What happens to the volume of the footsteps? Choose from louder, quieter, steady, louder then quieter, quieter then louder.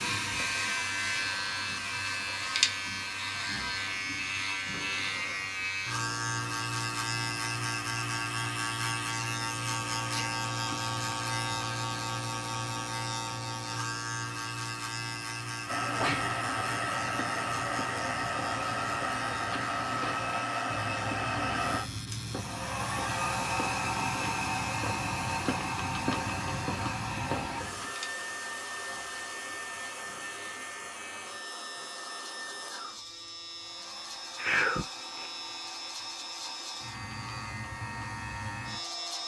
louder.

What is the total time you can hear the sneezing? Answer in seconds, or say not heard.
2 s.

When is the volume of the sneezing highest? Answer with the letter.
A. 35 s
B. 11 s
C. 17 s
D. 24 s
A.